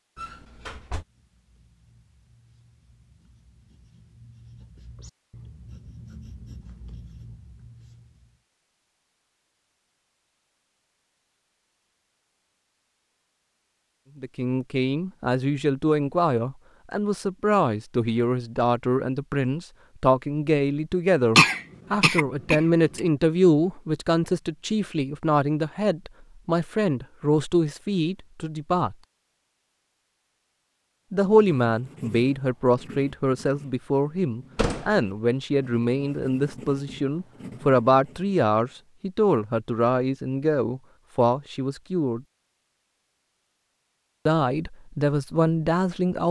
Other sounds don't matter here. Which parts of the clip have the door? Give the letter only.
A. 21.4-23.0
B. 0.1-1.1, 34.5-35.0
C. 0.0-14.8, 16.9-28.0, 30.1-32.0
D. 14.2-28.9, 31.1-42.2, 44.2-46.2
B.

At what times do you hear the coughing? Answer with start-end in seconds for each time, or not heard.
21.4-23.0.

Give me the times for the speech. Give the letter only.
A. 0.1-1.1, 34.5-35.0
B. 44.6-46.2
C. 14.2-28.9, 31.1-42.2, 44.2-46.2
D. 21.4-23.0
C.